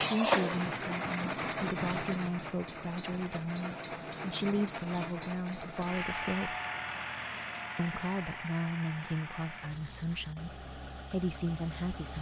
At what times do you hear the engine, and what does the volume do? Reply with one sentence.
The engine can be heard from 0.0 to 12.1 s, getting quieter.